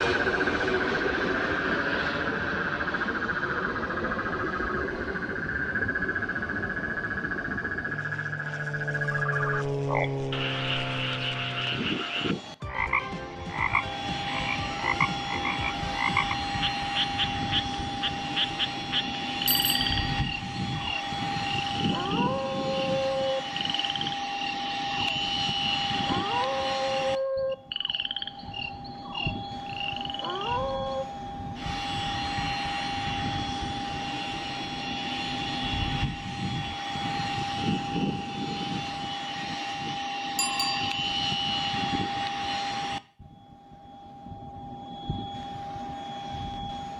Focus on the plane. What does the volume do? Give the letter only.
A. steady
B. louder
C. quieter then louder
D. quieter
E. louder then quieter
A.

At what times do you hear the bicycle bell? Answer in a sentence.
The bicycle bell can be heard from 19.4 to 20.3 s and from 40.4 to 41.0 s.